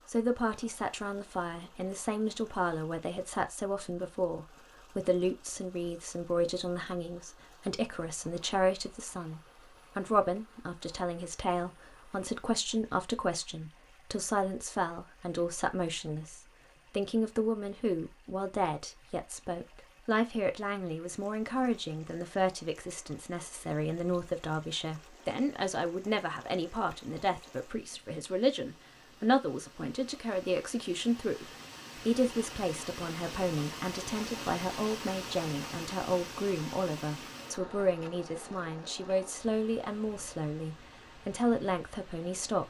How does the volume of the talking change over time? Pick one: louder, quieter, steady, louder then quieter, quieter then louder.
steady.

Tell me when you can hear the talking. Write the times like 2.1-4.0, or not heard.
0.1-42.6.